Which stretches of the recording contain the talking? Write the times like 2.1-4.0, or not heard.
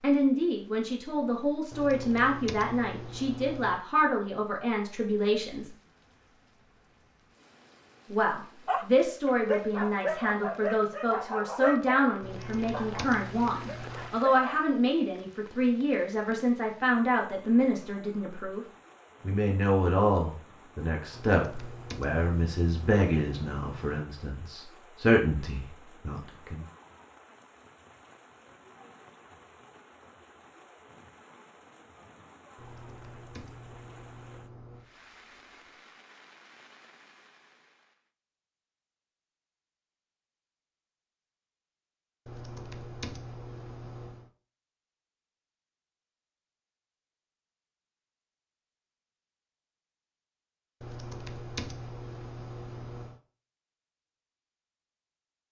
0.0-5.7, 8.1-26.6.